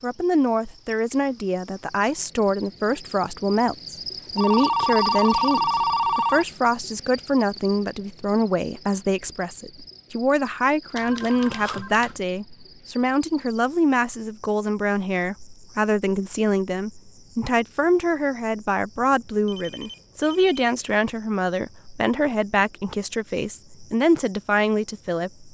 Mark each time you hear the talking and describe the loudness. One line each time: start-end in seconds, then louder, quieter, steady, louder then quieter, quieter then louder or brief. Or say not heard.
0.0-25.4 steady.